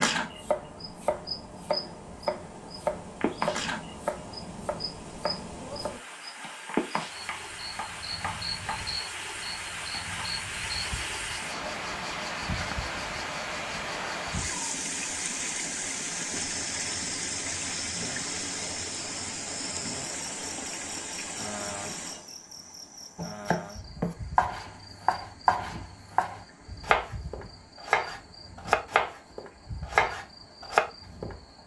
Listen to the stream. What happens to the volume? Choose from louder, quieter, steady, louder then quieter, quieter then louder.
louder then quieter.